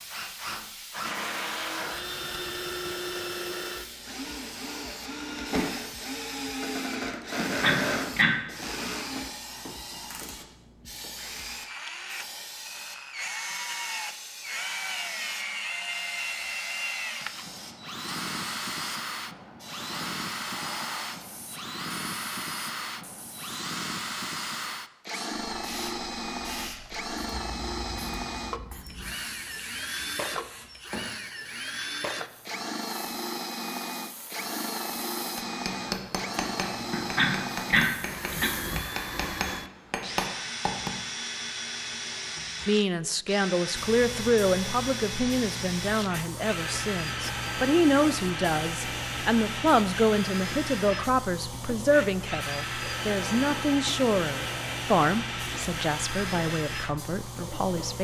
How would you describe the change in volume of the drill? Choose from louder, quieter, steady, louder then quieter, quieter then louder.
steady.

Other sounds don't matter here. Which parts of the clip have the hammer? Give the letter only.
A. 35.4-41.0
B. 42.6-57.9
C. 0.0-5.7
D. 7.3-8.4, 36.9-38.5
A.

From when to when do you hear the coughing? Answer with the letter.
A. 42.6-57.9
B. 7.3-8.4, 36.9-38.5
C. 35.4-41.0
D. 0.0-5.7
B.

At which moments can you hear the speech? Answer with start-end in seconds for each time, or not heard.
42.6-57.9.